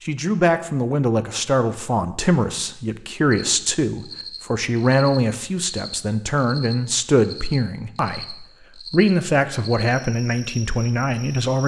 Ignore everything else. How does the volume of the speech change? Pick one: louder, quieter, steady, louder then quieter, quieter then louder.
steady.